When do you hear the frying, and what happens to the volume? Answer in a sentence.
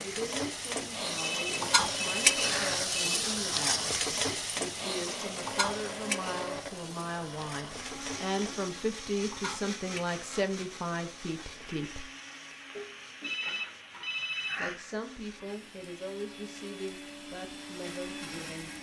You can hear the frying from 0.0 to 18.7 s, getting quieter.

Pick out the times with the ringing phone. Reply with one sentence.
You can hear the ringing phone from 1.1 to 3.0 s and from 13.2 to 14.8 s.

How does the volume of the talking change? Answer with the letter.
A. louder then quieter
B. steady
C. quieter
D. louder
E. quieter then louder
A.